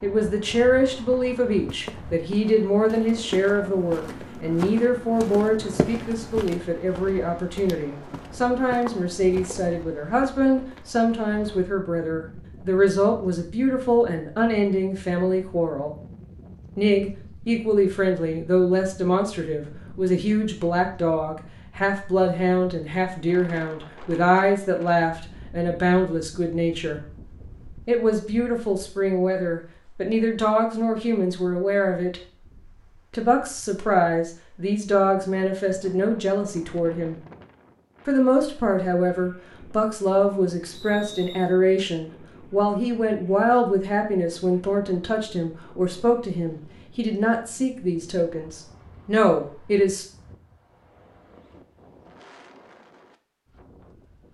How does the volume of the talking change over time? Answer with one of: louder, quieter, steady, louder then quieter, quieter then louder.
steady.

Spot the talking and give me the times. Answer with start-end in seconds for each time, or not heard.
0.0-15.9, 16.8-27.0, 27.9-32.2, 33.1-37.2, 38.0-50.0.